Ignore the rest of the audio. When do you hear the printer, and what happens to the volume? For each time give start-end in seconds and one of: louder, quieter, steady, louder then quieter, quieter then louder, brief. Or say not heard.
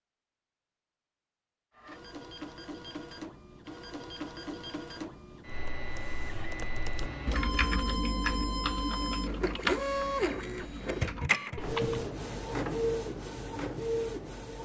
1.8-14.5 louder.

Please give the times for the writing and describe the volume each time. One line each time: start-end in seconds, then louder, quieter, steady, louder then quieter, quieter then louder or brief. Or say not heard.
not heard.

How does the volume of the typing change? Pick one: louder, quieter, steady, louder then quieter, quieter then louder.
louder then quieter.